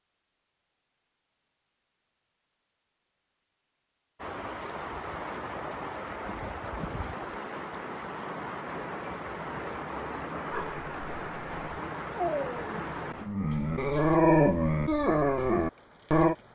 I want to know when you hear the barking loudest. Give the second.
14 s.